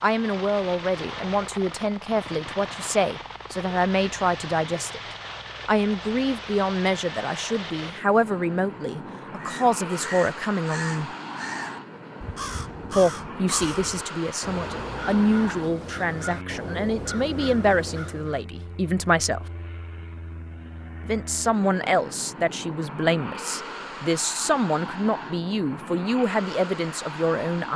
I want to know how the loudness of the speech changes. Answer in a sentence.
The volume of the speech stays about the same.